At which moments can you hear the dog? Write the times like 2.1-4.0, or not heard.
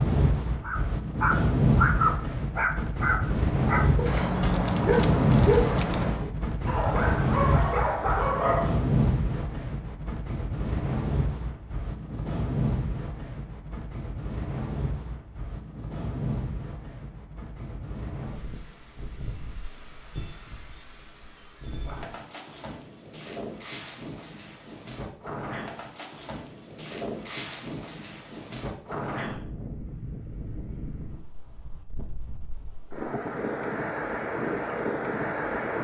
0.6-8.8.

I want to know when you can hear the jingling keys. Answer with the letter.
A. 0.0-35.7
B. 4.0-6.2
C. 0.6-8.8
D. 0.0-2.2
B.